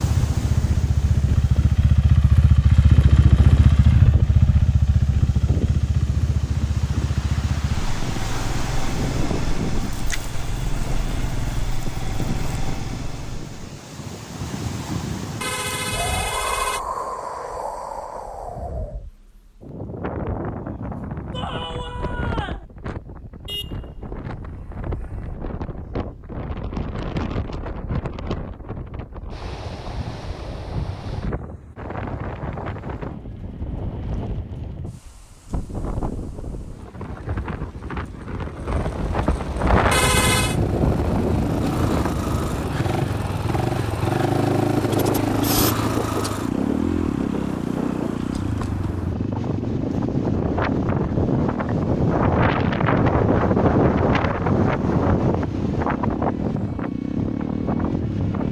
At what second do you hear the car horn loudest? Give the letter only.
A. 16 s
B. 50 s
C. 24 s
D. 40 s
D.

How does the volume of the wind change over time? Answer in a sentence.
The loudness of the wind goes up.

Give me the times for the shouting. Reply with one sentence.
You can hear the shouting from 21.3 to 22.6 s.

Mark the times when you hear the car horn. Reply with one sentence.
You can hear the car horn from 15.4 to 16.8 s, from 23.4 to 25.4 s and from 39.9 to 40.6 s.